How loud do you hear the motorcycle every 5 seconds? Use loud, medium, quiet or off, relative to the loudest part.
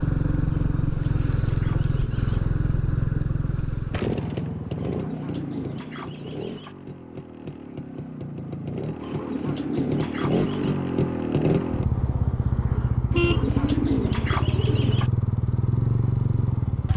loud, medium, loud, loud.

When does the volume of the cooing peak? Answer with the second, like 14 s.
14 s.